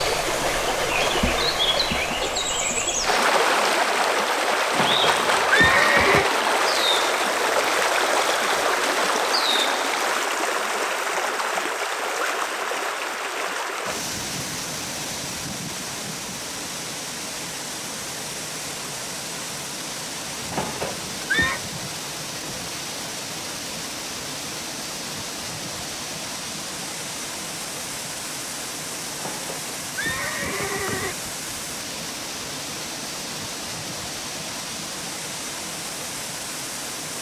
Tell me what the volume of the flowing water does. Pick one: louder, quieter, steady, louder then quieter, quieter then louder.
quieter.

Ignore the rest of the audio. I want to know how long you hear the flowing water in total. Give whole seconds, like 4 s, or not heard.
37 s.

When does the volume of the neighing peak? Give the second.
6 s.